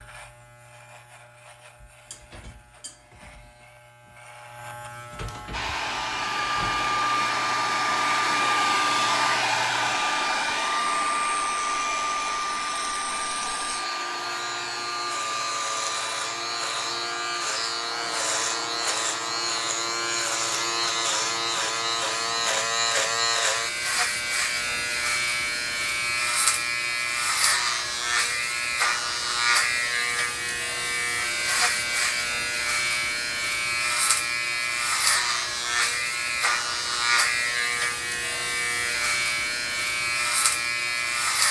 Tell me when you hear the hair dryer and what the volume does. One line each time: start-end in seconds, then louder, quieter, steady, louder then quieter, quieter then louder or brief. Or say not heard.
5.5-22.6 quieter.